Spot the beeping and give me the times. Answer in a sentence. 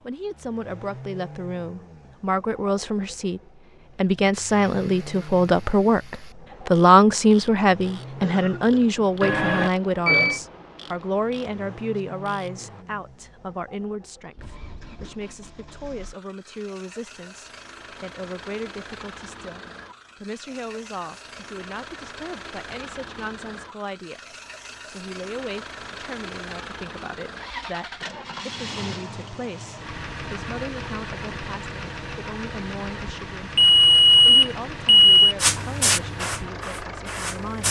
You can hear the beeping from 9.2 to 10.4 s and from 33.5 to 35.4 s.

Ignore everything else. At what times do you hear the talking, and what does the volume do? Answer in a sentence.
The talking can be heard from 0.0 to 37.6 s, getting quieter.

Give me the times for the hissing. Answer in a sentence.
You can hear the hissing from 35.4 to 37.6 s.